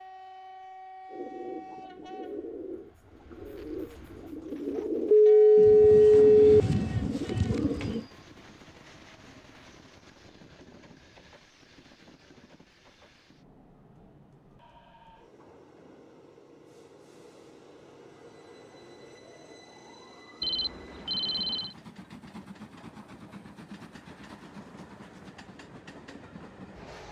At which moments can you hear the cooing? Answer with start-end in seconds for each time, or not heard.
1.1-8.1.